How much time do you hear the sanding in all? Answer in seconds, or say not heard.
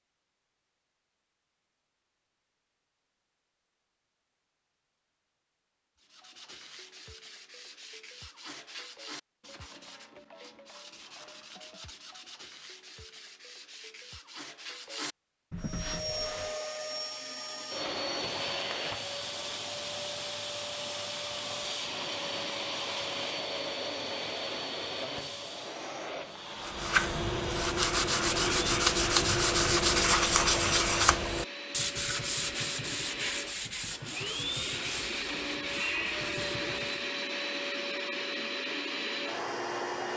21 s.